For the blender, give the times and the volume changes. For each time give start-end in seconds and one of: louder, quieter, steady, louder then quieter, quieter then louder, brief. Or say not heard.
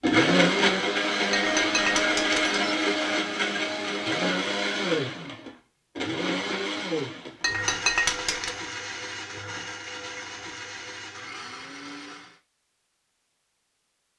0.0-12.4 quieter.